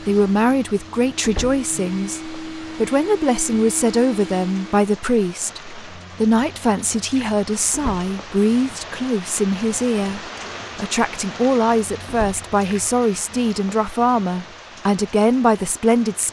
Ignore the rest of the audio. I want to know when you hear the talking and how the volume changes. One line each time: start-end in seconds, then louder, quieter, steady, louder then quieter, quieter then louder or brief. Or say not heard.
0.0-16.2 steady.